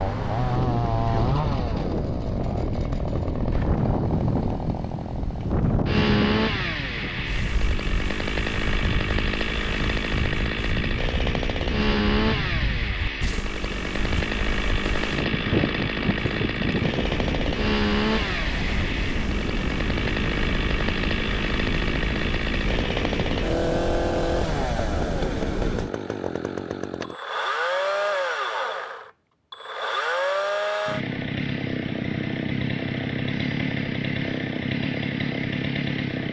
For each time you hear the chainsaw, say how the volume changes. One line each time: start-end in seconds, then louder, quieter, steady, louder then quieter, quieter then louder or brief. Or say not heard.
0.0-36.2 steady.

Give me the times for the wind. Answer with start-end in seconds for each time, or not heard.
0.0-25.9.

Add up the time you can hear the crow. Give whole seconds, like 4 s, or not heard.
not heard.